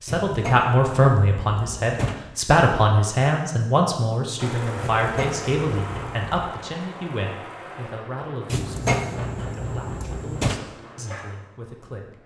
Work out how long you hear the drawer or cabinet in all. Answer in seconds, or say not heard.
6 s.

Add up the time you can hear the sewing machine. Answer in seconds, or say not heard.
8 s.